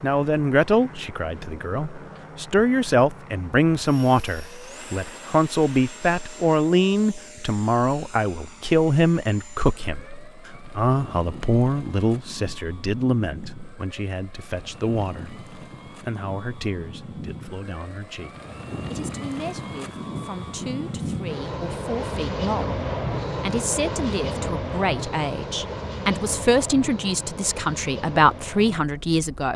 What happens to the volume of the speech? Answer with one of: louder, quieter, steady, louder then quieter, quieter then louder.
quieter then louder.